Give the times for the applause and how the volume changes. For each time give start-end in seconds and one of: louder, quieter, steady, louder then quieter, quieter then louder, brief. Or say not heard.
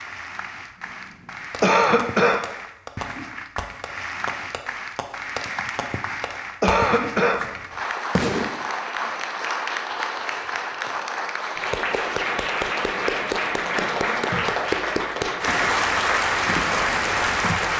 0.0-17.7 louder.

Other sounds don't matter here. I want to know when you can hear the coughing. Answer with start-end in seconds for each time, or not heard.
1.6-2.5, 6.6-7.5, 13.8-14.3.